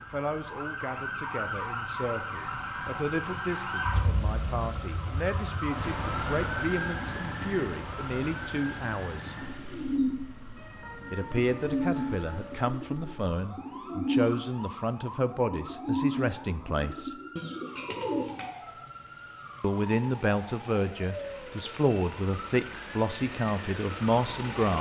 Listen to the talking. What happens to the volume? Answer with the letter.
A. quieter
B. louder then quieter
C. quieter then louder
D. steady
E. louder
E.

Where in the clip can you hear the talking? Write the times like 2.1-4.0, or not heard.
0.0-9.3, 11.1-17.1, 19.6-24.7.